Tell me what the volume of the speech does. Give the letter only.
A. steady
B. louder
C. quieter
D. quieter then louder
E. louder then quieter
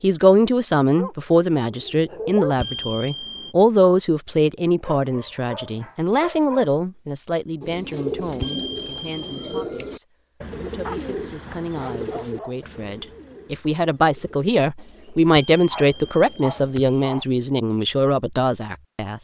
D.